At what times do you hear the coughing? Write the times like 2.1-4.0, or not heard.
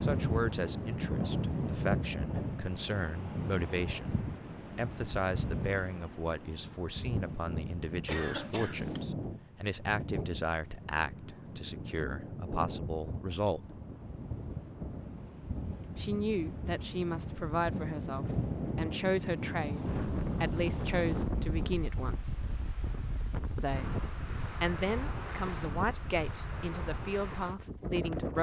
8.1-9.1.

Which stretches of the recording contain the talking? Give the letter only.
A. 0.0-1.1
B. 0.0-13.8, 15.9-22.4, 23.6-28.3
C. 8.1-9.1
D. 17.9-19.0
B.